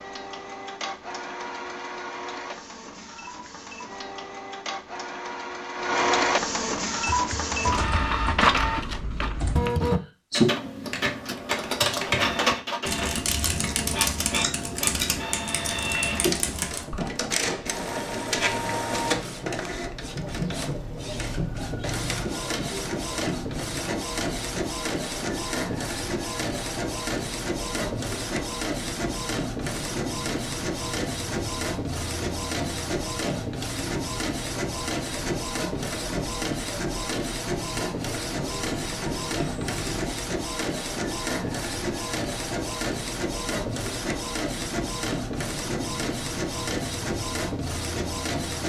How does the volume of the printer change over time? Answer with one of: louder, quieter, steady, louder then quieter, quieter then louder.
steady.